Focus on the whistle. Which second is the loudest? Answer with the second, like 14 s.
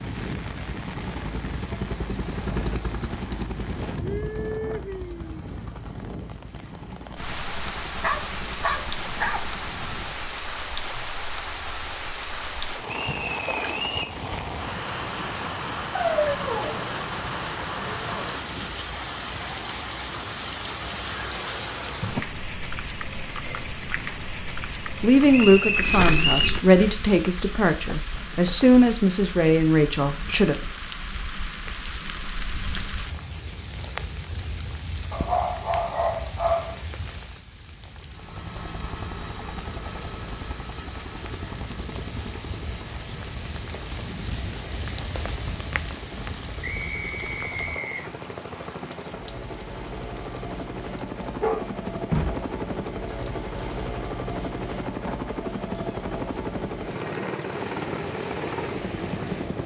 26 s.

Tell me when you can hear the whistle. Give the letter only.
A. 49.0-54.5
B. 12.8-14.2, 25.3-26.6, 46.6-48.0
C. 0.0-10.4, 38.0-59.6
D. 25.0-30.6
B.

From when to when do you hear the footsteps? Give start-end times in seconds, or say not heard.
not heard.